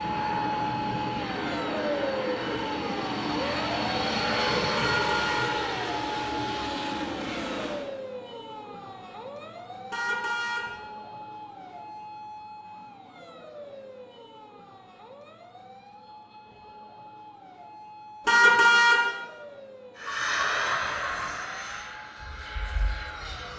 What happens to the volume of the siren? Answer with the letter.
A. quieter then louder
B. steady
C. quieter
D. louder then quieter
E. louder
C.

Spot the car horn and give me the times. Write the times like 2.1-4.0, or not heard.
4.8-5.5, 9.9-10.7, 18.2-19.1.